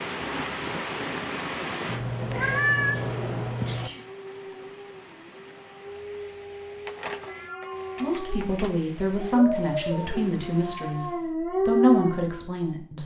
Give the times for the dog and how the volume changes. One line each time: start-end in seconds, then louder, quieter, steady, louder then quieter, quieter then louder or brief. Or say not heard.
3.9-12.5 louder.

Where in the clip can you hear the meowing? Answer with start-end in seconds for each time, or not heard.
1.9-3.9, 6.8-8.7.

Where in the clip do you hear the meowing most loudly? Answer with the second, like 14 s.
3 s.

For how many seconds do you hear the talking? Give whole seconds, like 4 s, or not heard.
5 s.